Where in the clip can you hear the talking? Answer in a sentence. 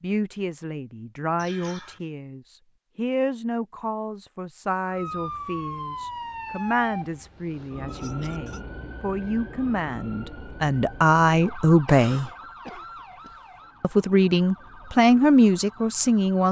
You can hear the talking from 0.0 to 12.3 s and from 13.8 to 16.4 s.